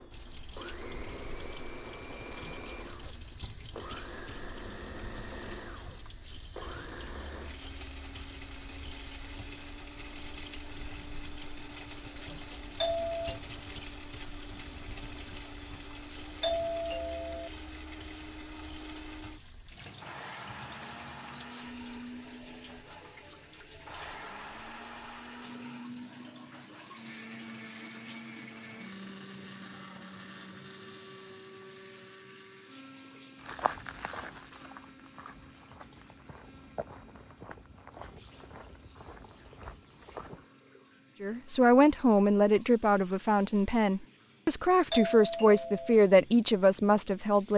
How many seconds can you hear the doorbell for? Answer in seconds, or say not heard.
3 s.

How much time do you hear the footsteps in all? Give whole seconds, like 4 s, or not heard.
7 s.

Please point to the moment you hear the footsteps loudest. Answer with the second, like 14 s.
34 s.